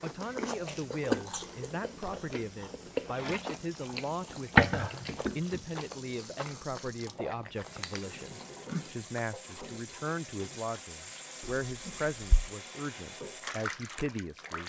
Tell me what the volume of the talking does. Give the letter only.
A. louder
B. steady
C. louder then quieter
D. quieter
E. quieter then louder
B.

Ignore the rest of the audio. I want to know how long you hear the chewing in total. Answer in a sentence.
You can hear the chewing for 10 seconds altogether.